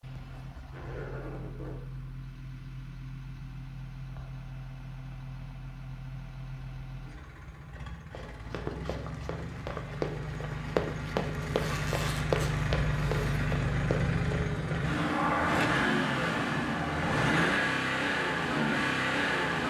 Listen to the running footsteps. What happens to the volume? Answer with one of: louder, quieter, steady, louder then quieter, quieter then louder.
louder then quieter.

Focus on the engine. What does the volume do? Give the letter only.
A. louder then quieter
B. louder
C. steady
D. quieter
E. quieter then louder
B.